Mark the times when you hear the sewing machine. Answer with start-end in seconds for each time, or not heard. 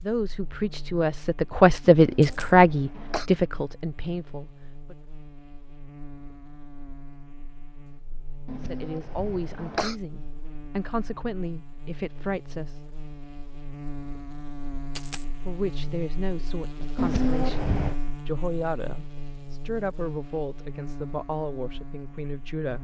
not heard.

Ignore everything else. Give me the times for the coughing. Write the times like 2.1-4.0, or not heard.
1.9-3.3, 8.4-9.9, 16.9-17.9.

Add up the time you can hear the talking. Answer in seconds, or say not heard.
16 s.